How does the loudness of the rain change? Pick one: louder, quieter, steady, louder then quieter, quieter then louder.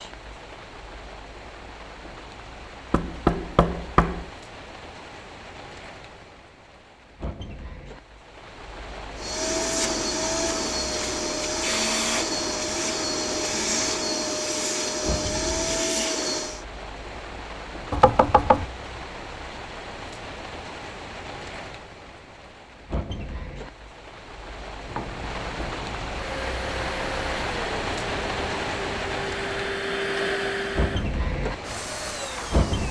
louder.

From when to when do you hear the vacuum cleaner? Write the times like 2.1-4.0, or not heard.
9.2-16.6, 26.1-32.8.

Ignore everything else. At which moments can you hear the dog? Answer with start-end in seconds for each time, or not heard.
not heard.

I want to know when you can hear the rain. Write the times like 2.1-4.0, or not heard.
0.0-32.8.